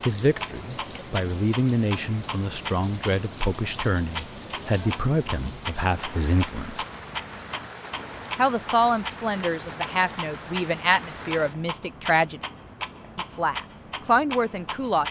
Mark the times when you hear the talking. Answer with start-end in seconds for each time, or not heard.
0.1-6.8, 8.3-12.4, 13.2-15.0.